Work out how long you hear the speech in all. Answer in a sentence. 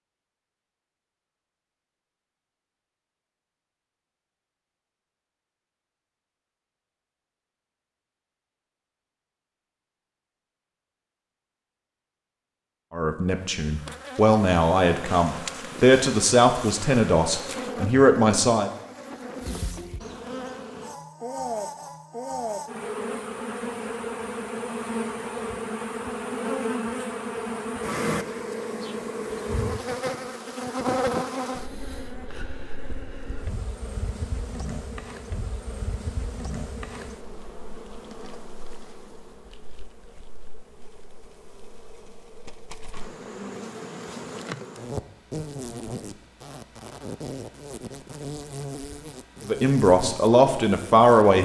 You can hear the speech for 8 seconds altogether.